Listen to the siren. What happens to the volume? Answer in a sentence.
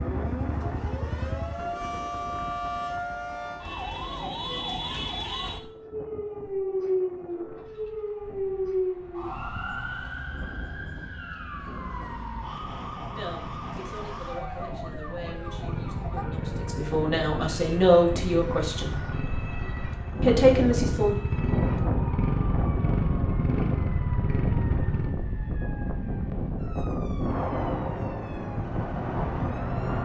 The loudness of the siren goes down.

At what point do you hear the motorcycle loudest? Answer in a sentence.
The volume of the motorcycle peaks at 22 seconds.